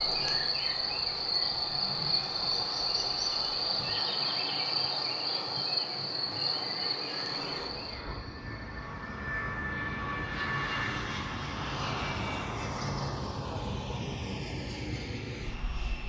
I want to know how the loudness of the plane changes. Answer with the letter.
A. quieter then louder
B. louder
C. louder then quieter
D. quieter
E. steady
B.